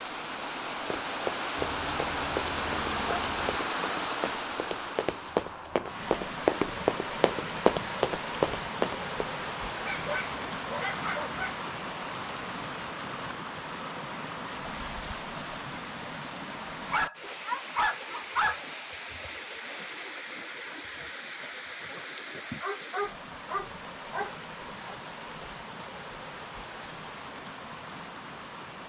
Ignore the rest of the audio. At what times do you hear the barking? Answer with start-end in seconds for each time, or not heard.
1.6-3.6, 9.8-11.6, 16.9-18.6, 22.1-24.9.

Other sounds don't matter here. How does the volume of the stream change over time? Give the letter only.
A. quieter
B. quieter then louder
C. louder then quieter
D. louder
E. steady
A.